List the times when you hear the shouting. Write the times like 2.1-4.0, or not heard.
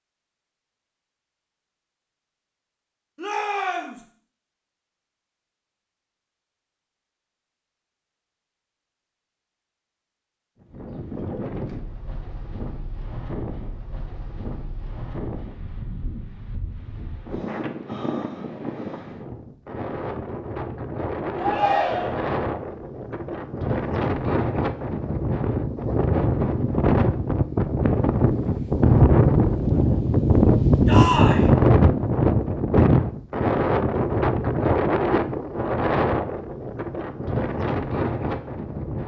3.1-4.0, 21.4-22.2, 30.9-31.4.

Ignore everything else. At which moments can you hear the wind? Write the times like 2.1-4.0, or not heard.
10.6-39.0.